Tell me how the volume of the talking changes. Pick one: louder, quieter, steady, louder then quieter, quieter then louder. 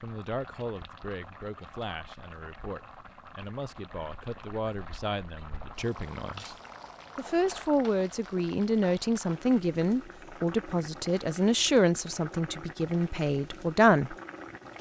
louder.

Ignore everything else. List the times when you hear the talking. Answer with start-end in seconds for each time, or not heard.
0.0-6.5, 7.2-14.2.